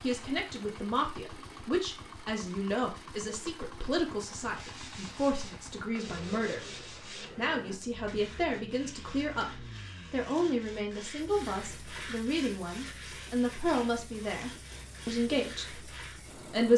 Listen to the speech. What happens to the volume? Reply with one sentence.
The loudness of the speech stays about the same.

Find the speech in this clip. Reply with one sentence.
The speech can be heard from 0.0 to 16.7 s.